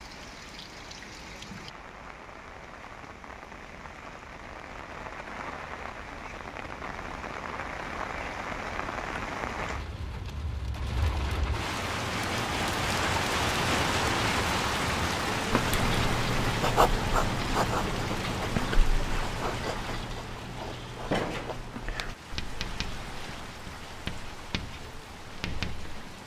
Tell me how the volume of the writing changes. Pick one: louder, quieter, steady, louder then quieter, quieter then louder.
quieter.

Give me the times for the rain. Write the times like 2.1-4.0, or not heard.
0.0-26.2.